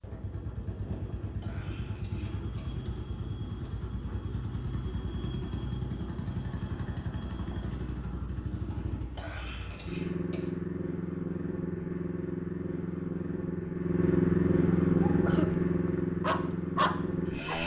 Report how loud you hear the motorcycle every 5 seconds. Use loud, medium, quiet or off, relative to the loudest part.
medium, medium, loud, loud.